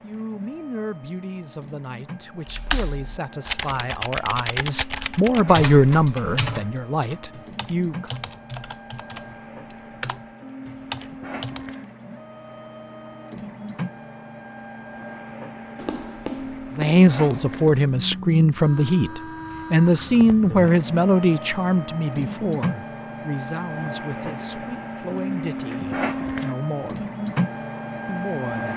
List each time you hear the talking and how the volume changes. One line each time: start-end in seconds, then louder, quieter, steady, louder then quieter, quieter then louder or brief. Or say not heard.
0.0-8.2 louder then quieter
16.8-27.1 quieter
28.1-28.7 brief.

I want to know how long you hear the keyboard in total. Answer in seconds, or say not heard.
9 s.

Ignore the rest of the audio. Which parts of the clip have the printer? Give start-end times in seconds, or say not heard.
0.0-28.7.